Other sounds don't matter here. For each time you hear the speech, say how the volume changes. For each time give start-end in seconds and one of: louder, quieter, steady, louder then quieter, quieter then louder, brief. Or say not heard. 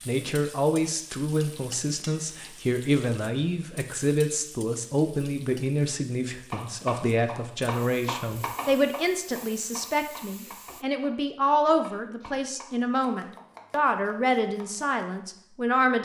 0.1-16.0 steady.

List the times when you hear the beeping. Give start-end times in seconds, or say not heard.
not heard.